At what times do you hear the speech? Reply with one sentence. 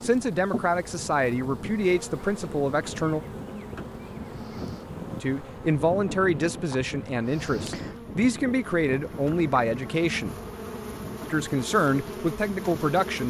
You can hear the speech from 0.0 to 3.2 s, from 5.2 to 10.4 s and from 11.3 to 13.2 s.